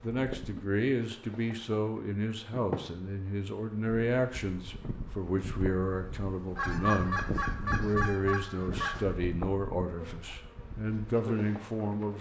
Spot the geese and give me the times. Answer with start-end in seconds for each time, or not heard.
6.5-9.2.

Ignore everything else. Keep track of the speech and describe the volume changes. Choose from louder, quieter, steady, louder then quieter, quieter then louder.
steady.